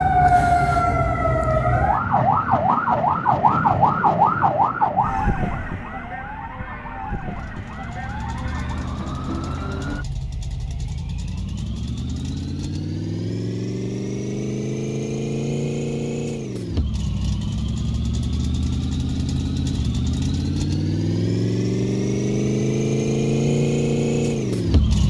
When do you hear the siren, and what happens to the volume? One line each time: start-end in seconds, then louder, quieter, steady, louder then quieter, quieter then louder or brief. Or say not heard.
0.0-10.1 quieter.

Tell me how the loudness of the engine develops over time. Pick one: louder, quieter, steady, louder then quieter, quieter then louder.
louder.